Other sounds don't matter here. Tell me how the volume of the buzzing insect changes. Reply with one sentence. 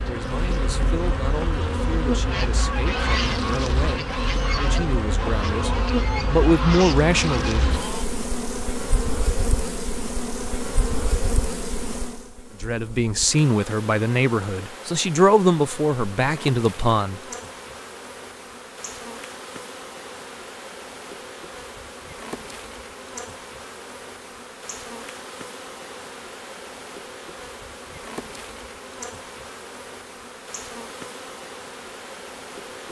The volume of the buzzing insect goes down.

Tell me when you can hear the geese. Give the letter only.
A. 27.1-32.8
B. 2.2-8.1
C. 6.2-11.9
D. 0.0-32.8
B.